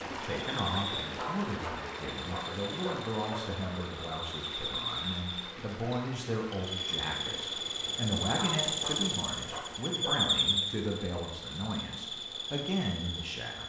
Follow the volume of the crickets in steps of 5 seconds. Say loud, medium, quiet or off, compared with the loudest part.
medium, loud, loud.